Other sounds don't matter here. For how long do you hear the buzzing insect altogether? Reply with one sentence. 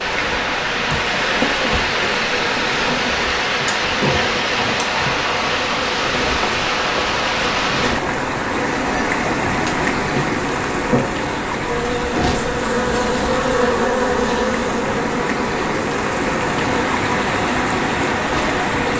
The buzzing insect can be heard for 19 seconds in total.